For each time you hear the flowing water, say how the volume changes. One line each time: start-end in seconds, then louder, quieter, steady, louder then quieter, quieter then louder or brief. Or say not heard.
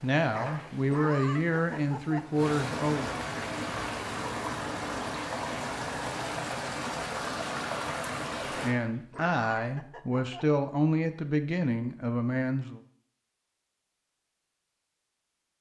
0.0-8.8 louder.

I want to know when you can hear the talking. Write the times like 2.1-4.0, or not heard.
0.0-3.1, 8.6-12.8.